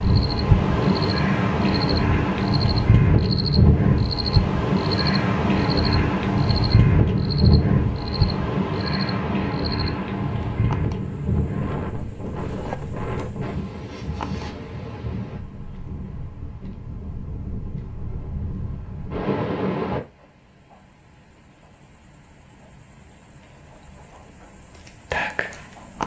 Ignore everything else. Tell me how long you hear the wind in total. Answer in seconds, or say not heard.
20 s.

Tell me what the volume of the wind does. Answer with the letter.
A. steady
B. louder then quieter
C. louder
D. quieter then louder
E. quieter
E.